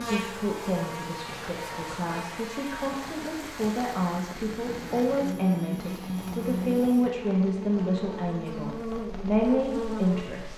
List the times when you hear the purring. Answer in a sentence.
You can't hear the purring here.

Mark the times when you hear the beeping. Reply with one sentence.
You can't hear the beeping here.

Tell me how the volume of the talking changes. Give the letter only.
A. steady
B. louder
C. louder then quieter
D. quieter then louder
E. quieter
B.